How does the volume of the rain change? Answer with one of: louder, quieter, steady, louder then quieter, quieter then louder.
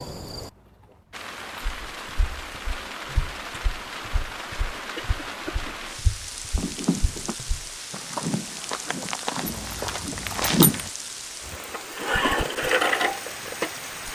steady.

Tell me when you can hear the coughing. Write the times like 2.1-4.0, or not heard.
5.0-5.8.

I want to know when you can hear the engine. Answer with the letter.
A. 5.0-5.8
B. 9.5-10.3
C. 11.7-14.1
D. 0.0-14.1
C.